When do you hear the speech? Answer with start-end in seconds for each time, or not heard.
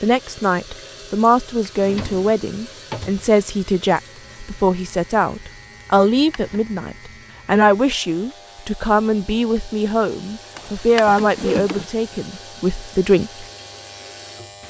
0.0-13.4.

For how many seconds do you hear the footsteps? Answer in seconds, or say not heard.
not heard.